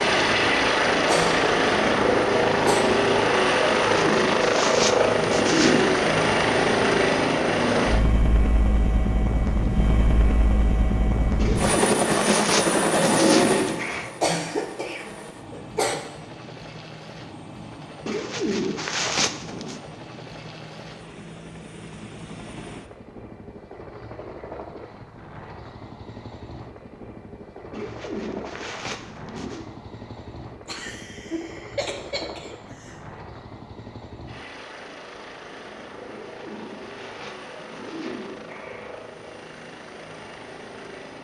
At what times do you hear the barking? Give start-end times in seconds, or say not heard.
not heard.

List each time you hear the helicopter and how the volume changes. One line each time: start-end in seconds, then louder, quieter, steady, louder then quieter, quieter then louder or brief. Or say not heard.
0.0-41.2 quieter.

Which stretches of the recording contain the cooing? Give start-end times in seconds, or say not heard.
3.6-6.0, 11.3-14.1, 18.1-19.8, 27.7-29.6, 36.0-39.0.